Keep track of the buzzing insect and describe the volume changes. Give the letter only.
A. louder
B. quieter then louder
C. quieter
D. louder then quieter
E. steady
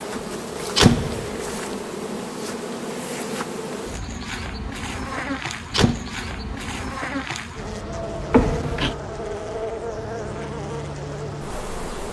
E.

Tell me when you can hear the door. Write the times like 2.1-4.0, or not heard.
0.1-1.4, 5.1-6.0, 8.3-8.9.